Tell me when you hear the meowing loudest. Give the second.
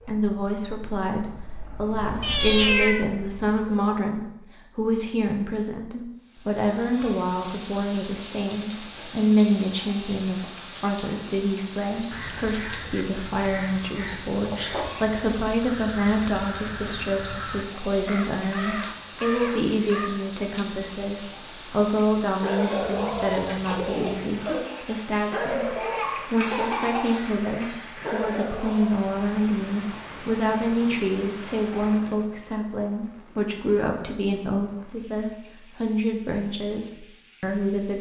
3 s.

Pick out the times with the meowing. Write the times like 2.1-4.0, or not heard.
2.2-3.0, 22.8-24.6.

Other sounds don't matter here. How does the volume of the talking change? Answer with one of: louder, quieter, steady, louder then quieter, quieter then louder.
steady.